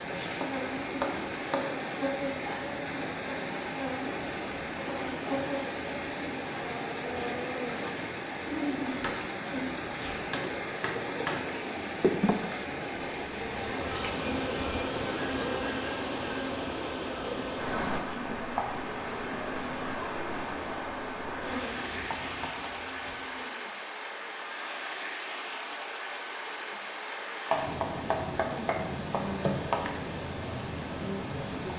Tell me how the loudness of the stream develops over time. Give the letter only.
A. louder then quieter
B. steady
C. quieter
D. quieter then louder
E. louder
B.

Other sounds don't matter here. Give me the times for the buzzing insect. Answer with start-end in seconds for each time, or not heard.
0.0-23.6.